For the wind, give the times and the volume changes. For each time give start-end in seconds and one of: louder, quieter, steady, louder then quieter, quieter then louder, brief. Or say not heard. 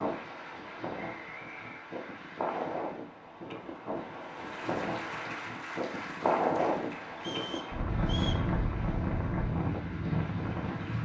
0.0-11.0 louder.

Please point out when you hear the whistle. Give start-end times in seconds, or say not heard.
1.0-1.9, 7.2-8.4.